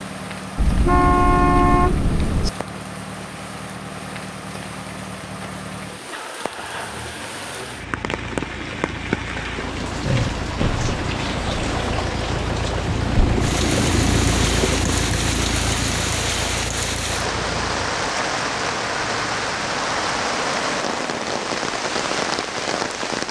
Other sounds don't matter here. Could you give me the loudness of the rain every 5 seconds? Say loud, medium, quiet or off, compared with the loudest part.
quiet, medium, loud, loud, loud.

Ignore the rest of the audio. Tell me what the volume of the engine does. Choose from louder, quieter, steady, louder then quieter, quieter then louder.
louder then quieter.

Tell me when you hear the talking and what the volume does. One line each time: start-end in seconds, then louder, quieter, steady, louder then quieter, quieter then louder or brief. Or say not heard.
not heard.